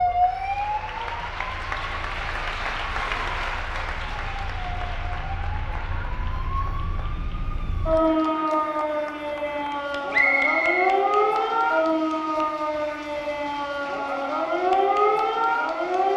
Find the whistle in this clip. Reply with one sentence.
The whistle can be heard from 10.1 to 11.5 s.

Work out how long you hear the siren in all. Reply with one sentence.
You can hear the siren for 16 seconds altogether.